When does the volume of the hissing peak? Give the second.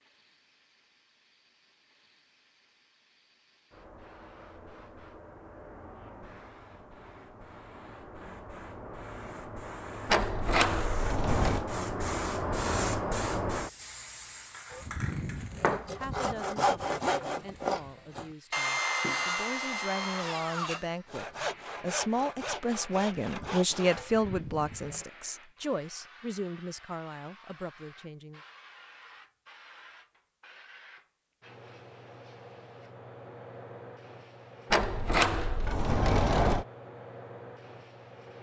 13 s.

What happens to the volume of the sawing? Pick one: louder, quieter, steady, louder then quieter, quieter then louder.
quieter.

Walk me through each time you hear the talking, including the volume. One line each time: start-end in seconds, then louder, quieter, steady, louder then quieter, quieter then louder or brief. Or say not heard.
15.9-28.4 louder then quieter.